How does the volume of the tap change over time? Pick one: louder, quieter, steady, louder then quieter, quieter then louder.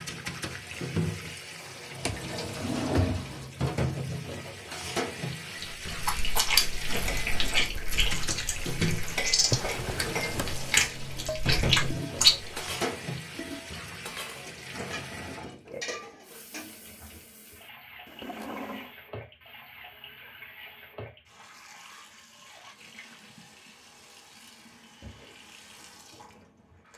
quieter.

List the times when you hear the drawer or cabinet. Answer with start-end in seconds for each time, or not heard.
2.0-3.5, 9.4-10.7, 18.1-18.9.